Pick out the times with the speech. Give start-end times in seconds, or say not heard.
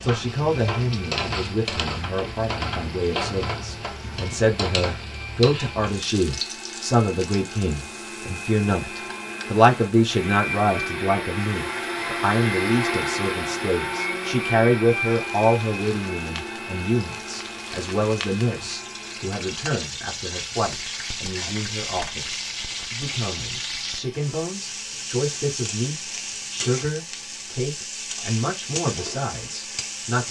0.0-30.2.